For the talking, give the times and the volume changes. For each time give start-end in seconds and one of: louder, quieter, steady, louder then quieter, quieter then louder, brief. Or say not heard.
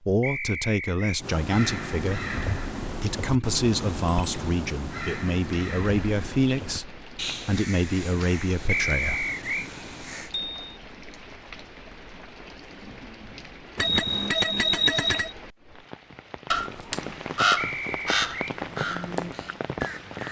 0.1-9.3 steady.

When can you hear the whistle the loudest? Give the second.
9 s.